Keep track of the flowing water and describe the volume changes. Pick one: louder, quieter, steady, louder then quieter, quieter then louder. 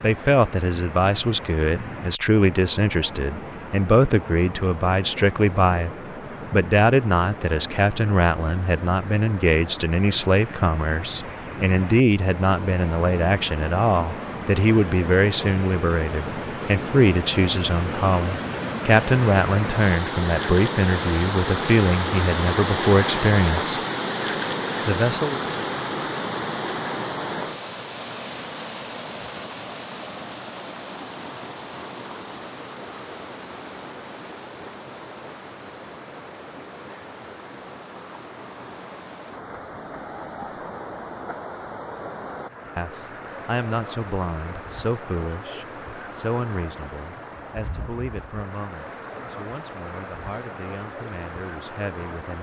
louder then quieter.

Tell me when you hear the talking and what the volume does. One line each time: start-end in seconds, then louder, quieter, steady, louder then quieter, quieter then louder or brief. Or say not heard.
0.0-23.8 steady
24.9-25.4 brief
42.8-52.3 quieter.